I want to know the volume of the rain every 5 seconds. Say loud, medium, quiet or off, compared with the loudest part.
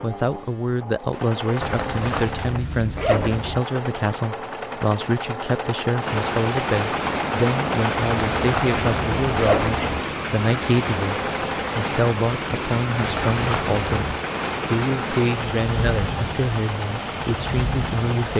off, loud, loud, loud.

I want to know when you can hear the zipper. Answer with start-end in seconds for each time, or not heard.
1.6-3.6, 8.0-10.0, 12.9-14.2.